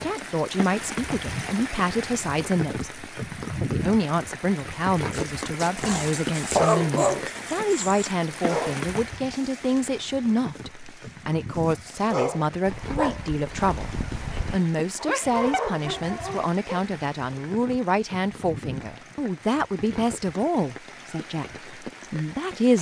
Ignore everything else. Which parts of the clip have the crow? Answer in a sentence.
The crow can't be heard in this clip.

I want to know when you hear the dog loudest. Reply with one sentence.
The volume of the dog peaks at 7 seconds.